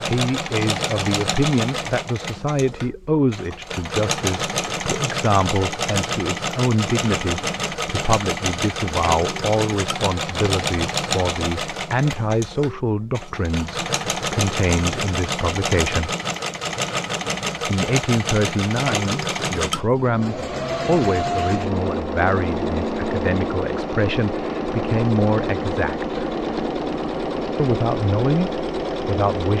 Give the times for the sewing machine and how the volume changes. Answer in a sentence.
The sewing machine can be heard from 0.0 to 29.5 s, at a steady volume.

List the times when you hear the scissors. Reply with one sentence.
The scissors can't be heard in this clip.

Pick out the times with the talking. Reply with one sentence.
The talking can be heard from 0.0 to 16.1 s, from 17.6 to 26.2 s and from 27.6 to 29.5 s.